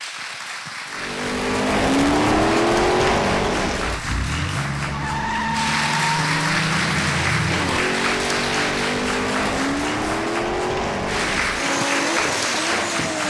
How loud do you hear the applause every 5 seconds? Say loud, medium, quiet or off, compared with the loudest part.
medium, loud, loud.